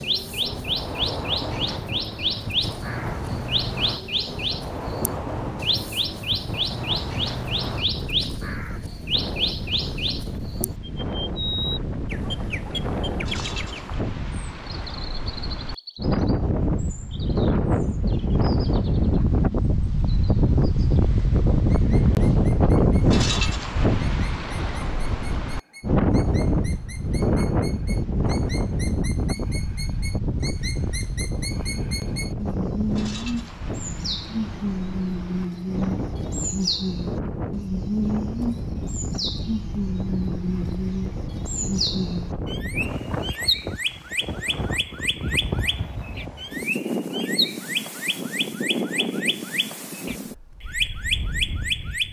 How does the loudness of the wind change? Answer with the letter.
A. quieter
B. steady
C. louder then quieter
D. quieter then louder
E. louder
C.